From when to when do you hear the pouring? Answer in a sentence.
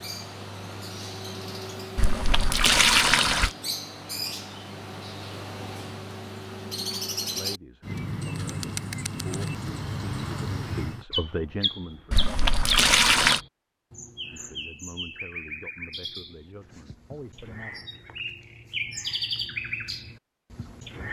The pouring can be heard from 1.9 to 3.5 s and from 12.1 to 13.4 s.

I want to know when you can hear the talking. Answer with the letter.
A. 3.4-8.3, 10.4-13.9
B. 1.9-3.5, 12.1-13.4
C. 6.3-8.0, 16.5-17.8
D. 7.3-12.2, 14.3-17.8
D.